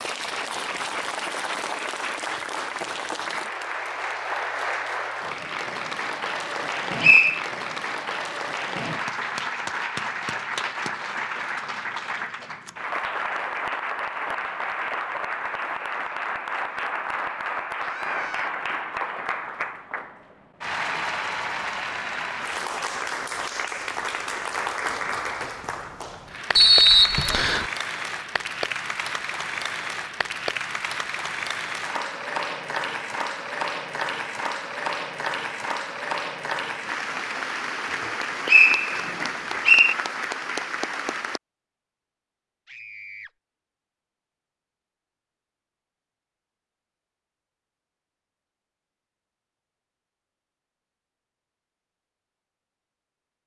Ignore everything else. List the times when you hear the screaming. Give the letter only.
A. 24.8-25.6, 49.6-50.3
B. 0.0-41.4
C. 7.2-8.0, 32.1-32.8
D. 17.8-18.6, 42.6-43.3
D.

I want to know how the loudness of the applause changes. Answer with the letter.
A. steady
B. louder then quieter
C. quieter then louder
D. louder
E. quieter
A.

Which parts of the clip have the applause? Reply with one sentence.
The applause can be heard from 0.0 to 41.4 s.